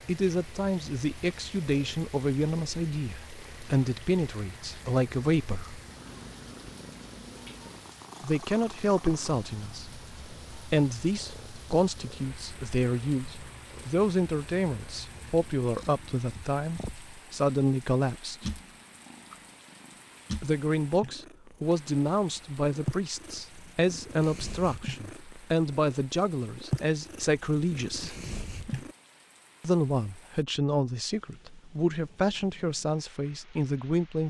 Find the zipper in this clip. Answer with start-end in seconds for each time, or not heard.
not heard.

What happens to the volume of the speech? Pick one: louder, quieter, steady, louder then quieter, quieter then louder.
steady.